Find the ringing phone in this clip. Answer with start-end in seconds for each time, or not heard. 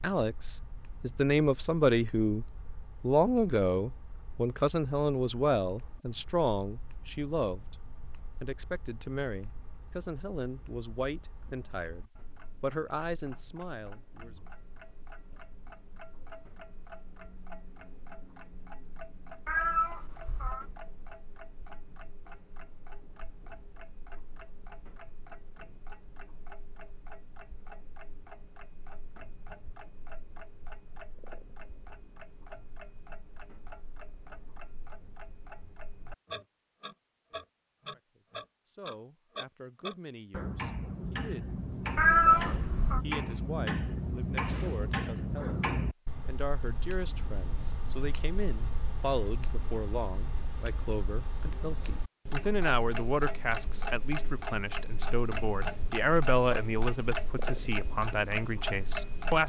not heard.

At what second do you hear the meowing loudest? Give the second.
42 s.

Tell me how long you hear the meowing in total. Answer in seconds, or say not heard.
2 s.